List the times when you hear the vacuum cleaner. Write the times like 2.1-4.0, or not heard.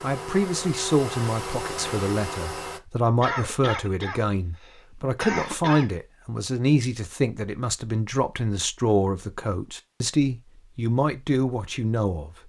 0.0-2.8.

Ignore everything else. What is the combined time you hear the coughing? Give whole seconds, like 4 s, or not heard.
3 s.